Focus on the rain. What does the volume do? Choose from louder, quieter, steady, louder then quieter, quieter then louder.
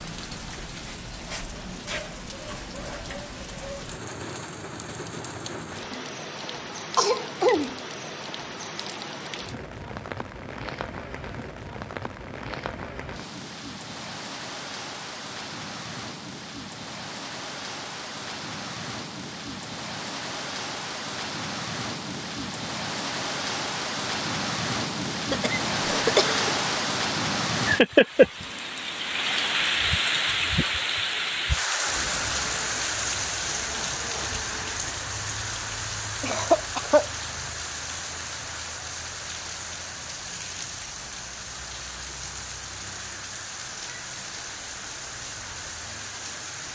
louder then quieter.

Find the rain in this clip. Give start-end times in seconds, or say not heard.
0.0-46.7.